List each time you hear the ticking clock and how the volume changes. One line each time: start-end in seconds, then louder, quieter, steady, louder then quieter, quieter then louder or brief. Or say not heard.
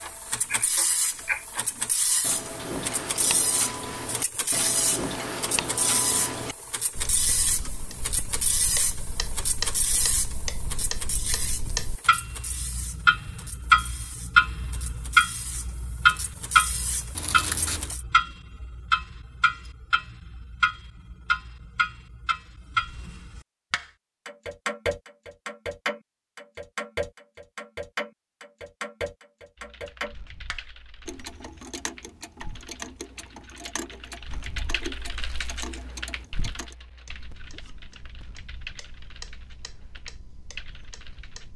0.0-41.5 louder then quieter.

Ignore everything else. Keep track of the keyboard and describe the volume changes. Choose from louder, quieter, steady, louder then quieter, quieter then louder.
louder then quieter.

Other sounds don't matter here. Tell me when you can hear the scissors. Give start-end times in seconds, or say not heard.
17.1-17.9.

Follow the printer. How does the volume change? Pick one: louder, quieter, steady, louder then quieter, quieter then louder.
quieter.